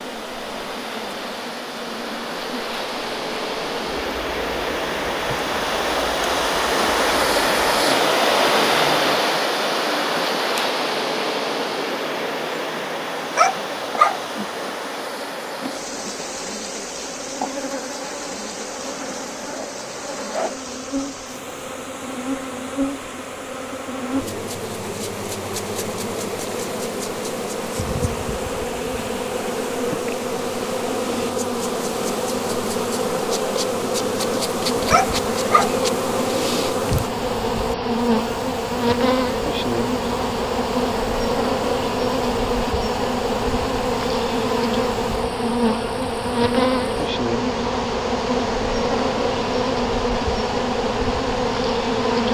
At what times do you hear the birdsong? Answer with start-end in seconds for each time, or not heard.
not heard.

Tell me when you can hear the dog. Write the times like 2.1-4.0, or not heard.
13.3-14.2, 34.9-35.8.